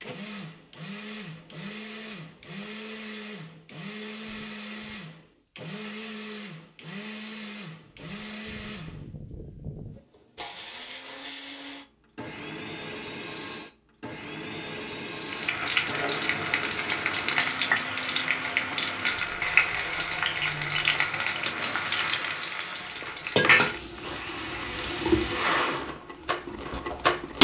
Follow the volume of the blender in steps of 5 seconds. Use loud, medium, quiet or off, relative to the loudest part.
quiet, quiet, quiet, quiet, quiet, loud.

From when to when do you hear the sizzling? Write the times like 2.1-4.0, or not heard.
15.2-27.3.